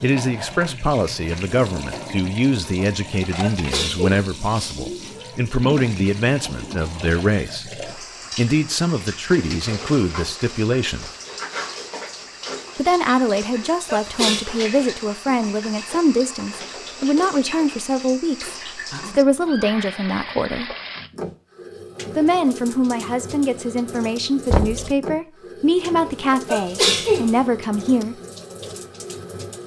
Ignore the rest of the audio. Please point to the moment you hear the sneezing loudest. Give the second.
27 s.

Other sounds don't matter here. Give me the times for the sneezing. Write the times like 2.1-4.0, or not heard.
3.4-5.2, 13.8-14.4, 26.4-27.4.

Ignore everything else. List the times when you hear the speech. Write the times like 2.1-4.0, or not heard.
0.0-11.1, 12.8-20.7, 22.1-28.1.